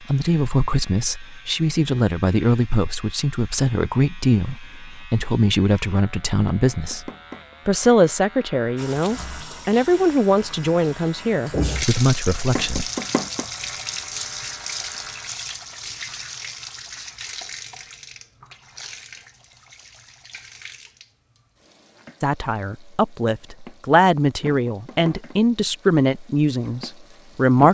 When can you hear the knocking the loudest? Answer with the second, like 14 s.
13 s.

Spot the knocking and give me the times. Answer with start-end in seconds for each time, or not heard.
6.7-7.5, 12.6-13.4, 24.4-25.4.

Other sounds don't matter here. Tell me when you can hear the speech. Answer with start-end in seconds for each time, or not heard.
0.0-12.9, 22.2-27.7.